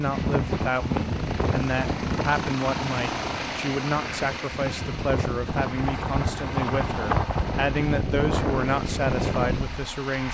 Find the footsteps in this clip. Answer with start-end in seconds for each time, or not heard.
not heard.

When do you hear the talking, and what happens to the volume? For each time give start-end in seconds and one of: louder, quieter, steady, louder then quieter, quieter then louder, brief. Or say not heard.
0.0-10.2 steady.